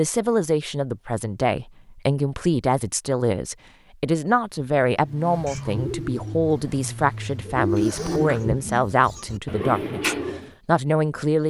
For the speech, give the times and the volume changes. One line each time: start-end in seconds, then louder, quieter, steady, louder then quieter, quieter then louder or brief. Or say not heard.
0.0-11.4 steady.